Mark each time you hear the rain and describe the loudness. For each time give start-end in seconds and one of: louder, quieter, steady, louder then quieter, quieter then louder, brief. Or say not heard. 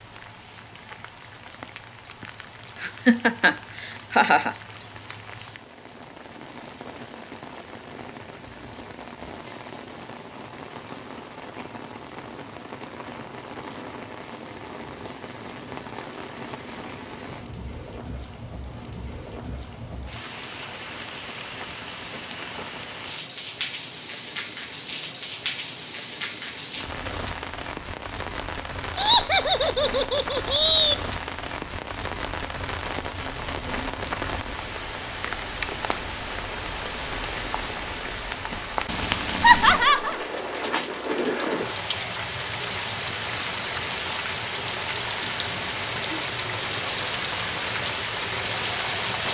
0.0-49.2 louder.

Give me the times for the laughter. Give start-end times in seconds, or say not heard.
2.8-4.5, 28.9-30.9, 39.4-40.2.